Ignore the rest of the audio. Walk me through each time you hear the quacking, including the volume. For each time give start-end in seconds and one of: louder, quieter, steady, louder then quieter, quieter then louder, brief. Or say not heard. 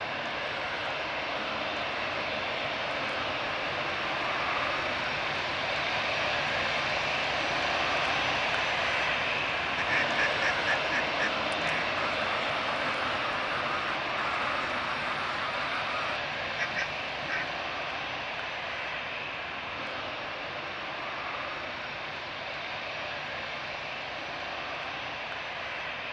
9.8-17.6 steady.